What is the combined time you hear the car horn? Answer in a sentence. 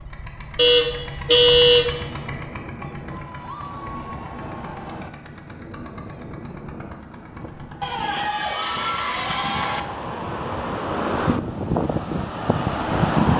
You can hear the car horn for 2 seconds altogether.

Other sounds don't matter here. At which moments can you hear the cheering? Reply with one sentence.
You can hear the cheering from 3.1 to 5.1 s and from 7.8 to 9.8 s.